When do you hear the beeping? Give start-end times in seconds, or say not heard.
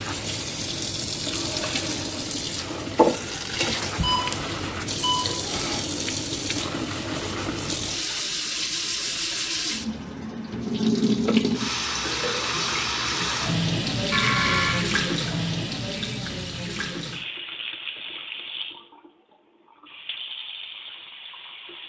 3.8-5.8, 14.1-14.8.